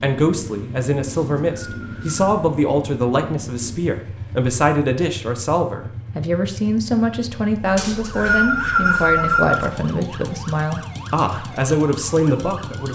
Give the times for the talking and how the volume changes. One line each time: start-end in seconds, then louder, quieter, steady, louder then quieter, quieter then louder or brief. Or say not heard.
0.0-12.9 steady.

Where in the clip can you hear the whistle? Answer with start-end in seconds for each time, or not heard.
1.1-2.3, 7.8-9.7.